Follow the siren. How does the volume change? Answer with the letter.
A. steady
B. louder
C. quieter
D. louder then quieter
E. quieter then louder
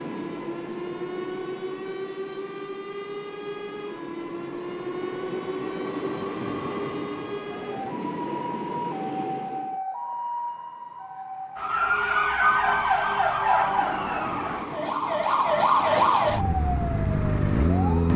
B.